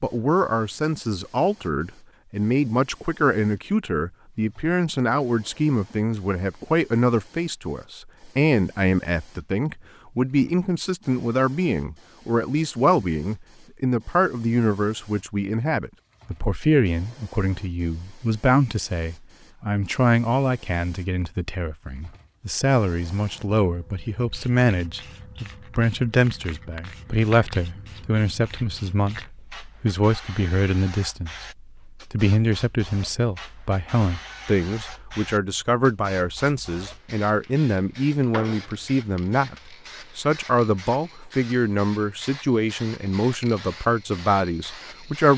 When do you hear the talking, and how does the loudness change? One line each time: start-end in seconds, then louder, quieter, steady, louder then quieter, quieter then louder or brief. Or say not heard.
0.0-45.3 steady.